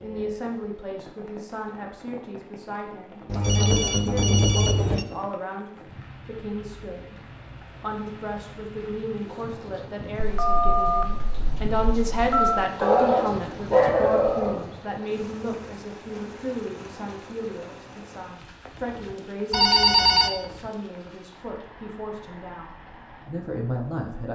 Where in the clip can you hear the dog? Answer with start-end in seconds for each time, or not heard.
12.8-14.7.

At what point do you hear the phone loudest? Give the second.
20 s.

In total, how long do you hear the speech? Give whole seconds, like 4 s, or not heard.
24 s.